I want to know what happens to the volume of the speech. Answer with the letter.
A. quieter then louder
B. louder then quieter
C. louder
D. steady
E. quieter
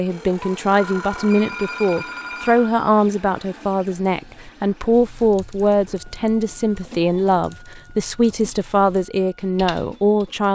D.